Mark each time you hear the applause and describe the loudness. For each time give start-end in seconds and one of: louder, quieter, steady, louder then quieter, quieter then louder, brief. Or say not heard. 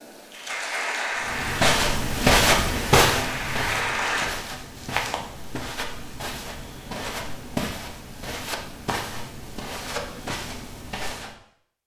0.0-4.3 quieter then louder.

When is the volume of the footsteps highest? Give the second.
2 s.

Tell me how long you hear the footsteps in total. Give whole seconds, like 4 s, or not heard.
10 s.